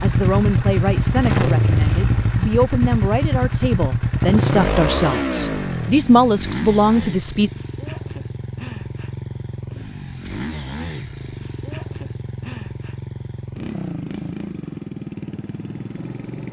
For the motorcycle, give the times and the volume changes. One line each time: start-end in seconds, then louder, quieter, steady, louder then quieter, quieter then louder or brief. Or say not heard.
0.0-16.4 quieter.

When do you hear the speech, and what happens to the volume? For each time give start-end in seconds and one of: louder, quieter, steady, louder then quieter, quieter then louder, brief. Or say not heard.
0.0-7.5 louder.